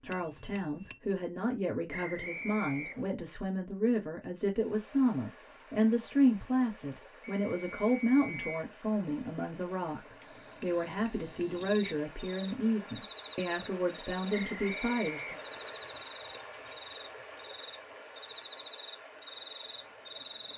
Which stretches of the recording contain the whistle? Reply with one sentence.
The whistle can be heard from 1.9 to 3.1 s, from 7.5 to 8.7 s and from 14.3 to 15.8 s.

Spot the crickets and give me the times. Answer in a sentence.
The crickets can be heard from 10.2 to 20.5 s.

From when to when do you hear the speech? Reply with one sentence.
You can hear the speech from 0.0 to 15.3 s.